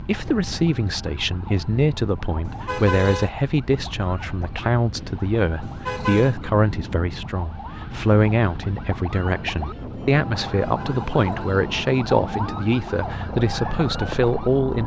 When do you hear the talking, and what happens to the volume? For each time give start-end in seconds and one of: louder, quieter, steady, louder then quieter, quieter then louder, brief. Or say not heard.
0.0-14.8 steady.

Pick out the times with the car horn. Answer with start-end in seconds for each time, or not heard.
2.5-3.3, 5.6-6.3, 10.6-11.6.